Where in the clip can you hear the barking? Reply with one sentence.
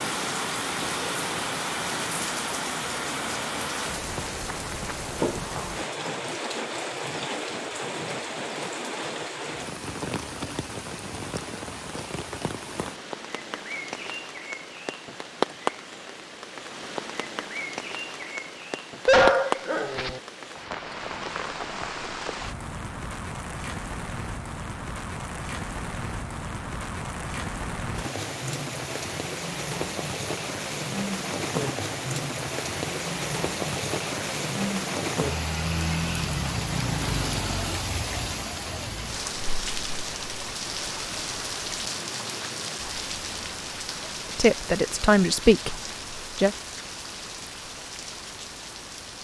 The barking can be heard from 19.1 to 20.2 s.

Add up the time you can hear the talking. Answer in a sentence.
You can hear the talking for 2 seconds altogether.